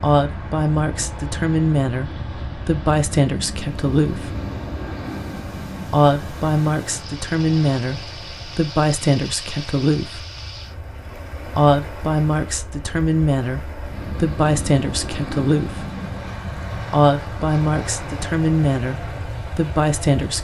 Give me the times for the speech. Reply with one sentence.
You can hear the speech from 0.0 to 4.3 s, from 5.9 to 10.2 s, from 11.6 to 15.8 s and from 16.9 to 20.3 s.